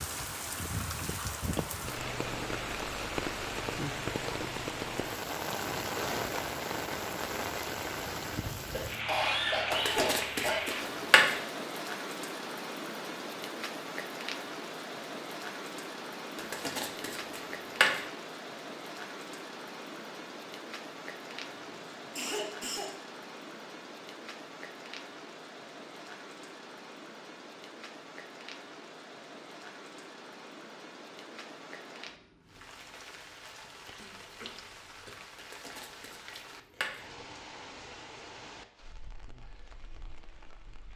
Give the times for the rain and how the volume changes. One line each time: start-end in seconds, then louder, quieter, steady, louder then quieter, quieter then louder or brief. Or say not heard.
0.0-40.9 quieter.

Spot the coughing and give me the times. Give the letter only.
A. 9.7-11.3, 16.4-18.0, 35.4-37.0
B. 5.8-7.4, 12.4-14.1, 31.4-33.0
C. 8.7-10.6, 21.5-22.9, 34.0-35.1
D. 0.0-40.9
C.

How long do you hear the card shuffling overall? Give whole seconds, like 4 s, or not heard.
5 s.